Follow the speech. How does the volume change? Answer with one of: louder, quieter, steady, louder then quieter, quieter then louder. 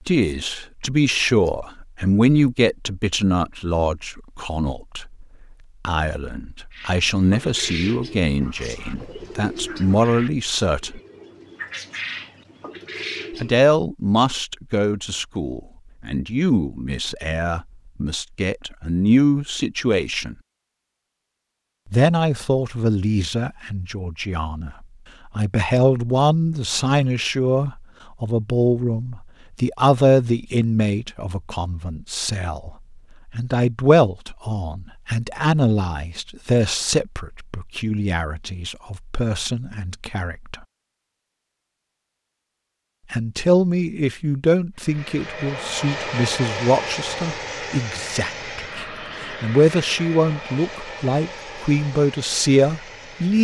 steady.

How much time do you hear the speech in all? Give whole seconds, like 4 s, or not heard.
46 s.